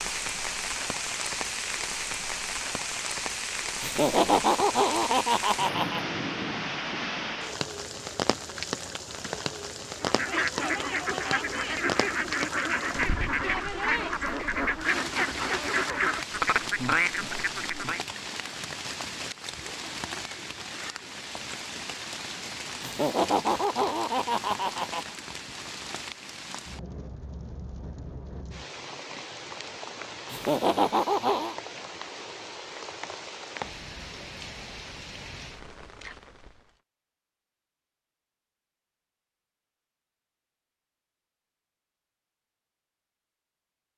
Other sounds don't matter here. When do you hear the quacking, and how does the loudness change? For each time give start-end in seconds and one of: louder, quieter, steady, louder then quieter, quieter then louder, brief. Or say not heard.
10.0-18.0 steady.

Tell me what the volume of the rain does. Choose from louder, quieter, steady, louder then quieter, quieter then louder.
quieter.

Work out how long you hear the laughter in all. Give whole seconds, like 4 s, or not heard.
6 s.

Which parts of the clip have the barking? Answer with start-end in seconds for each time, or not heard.
not heard.